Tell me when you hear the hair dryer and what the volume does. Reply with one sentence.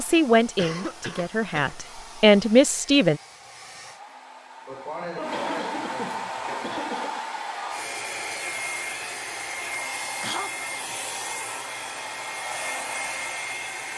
The hair dryer can be heard from 0.0 to 13.9 s, getting louder.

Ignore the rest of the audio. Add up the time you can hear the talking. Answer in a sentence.
You can hear the talking for 3 seconds altogether.